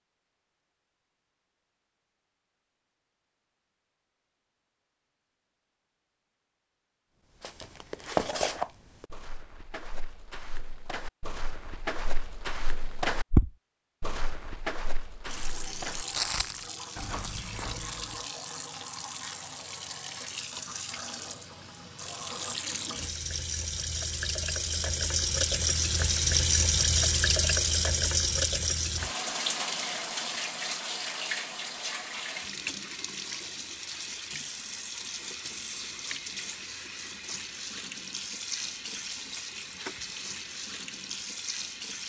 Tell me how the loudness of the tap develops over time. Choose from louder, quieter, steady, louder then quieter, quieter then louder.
louder then quieter.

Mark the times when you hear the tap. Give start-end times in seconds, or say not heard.
15.2-42.0.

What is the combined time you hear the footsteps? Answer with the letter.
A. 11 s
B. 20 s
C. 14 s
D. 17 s
A.